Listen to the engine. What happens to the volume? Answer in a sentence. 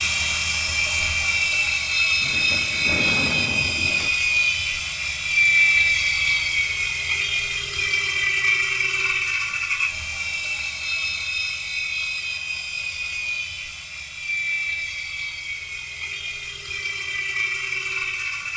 The loudness of the engine goes down.